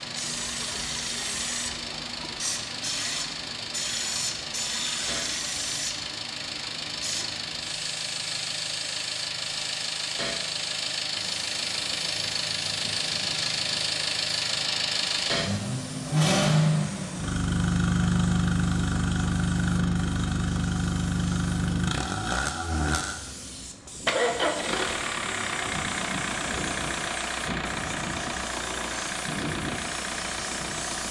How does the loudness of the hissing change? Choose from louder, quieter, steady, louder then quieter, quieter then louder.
quieter then louder.